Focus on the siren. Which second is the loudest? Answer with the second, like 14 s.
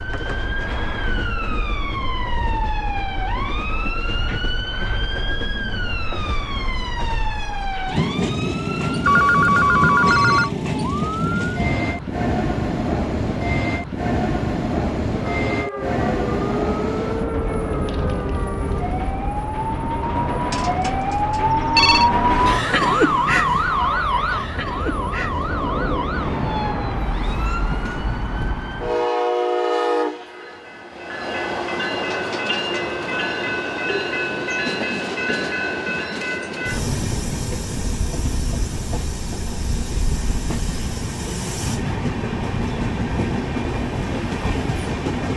23 s.